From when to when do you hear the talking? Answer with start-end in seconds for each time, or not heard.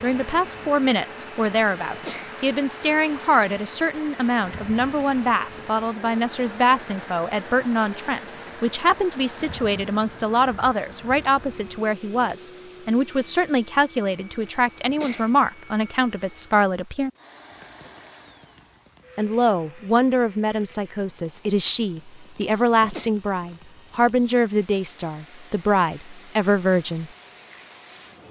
0.0-17.1, 19.1-27.1.